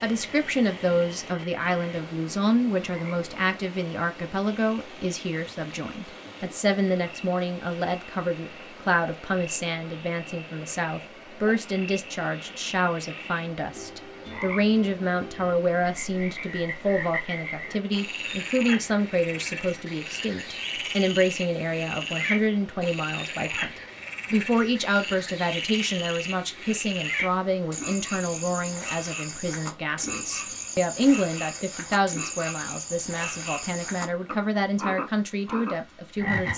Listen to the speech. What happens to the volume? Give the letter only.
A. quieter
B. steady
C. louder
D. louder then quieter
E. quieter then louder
B.